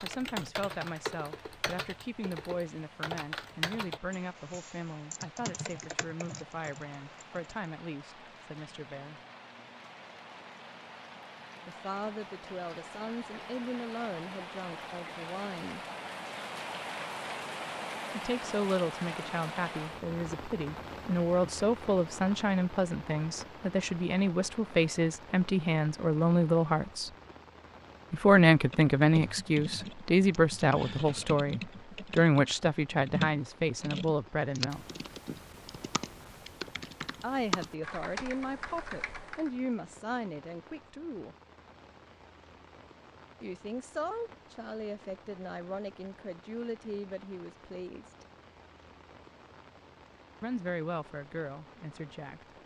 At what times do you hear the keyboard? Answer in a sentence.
The keyboard can be heard from 0.0 to 7.6 s and from 28.5 to 39.6 s.